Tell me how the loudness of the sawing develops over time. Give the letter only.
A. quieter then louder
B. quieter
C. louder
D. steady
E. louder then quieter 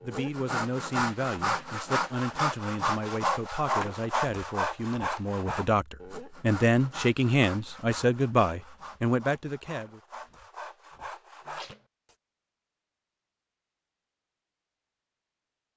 B.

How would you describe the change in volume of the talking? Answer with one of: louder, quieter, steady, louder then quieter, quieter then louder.
louder.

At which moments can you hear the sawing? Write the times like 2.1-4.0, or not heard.
0.0-11.8.